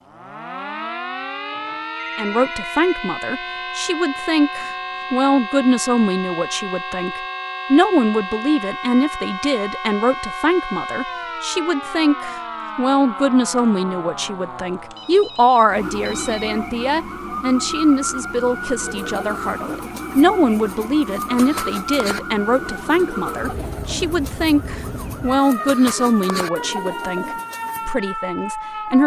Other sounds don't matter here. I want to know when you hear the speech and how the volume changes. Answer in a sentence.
You can hear the speech from 2.1 to 29.0 s, at a steady volume.